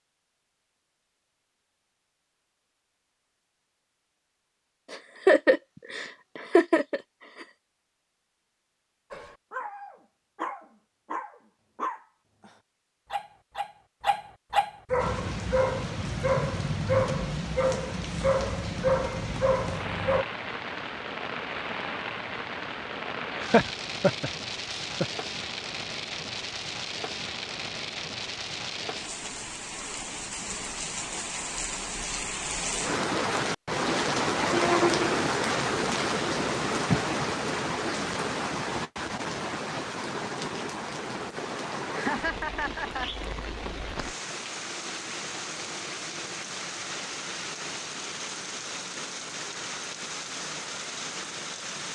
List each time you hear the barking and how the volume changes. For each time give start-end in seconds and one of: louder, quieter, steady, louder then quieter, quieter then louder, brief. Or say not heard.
9.1-20.2 louder.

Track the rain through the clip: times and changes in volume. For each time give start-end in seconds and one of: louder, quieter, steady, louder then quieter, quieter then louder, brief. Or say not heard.
14.9-51.8 louder then quieter.